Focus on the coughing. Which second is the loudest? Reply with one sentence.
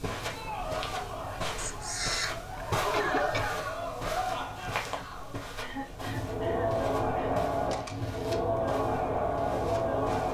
The volume of the coughing peaks at 3 seconds.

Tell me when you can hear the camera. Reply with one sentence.
The camera can be heard from 1.6 to 2.5 s and from 7.7 to 8.4 s.